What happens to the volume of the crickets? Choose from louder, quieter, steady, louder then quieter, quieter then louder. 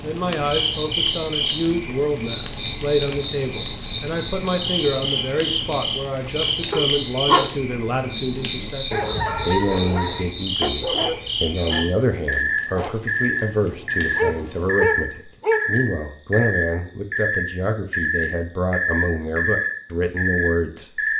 steady.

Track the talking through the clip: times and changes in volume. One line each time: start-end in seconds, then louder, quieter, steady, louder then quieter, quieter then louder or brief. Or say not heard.
0.0-21.0 steady.